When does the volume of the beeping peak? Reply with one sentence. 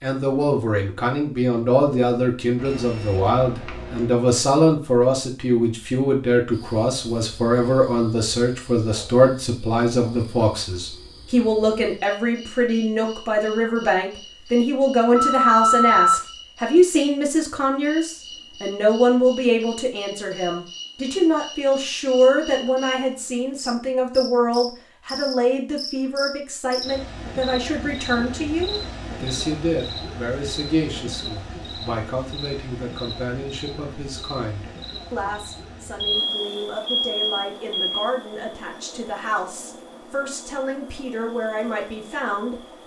The loudest moment of the beeping is at 16 seconds.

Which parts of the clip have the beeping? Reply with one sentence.
The beeping can be heard from 2.5 to 4.1 s, from 15.2 to 16.2 s and from 36.0 to 38.0 s.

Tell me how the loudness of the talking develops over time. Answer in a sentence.
The volume of the talking goes down.